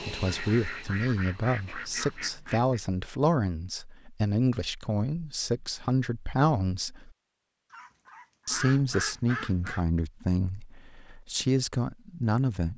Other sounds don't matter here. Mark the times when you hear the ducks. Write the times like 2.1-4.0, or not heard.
0.2-2.8, 7.7-9.8.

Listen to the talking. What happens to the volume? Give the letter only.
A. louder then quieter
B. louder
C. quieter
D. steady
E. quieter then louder
D.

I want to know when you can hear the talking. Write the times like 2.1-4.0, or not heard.
0.0-7.1, 8.4-12.7.